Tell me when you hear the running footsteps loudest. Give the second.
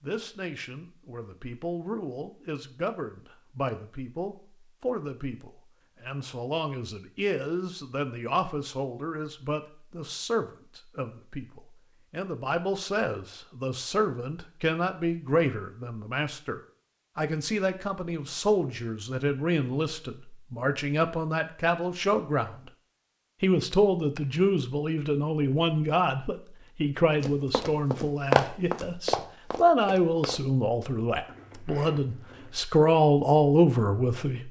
28 s.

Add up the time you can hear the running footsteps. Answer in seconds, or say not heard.
3 s.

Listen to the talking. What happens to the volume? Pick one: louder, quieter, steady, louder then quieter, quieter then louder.
louder.